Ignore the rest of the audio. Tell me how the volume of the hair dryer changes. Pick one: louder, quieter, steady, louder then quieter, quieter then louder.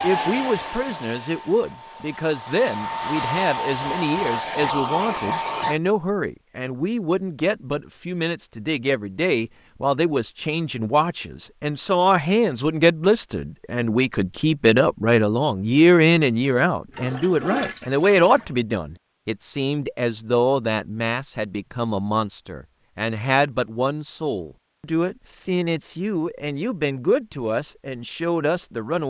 quieter then louder.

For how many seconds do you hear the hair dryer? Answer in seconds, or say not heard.
6 s.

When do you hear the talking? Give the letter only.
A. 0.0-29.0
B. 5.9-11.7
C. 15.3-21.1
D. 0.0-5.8
A.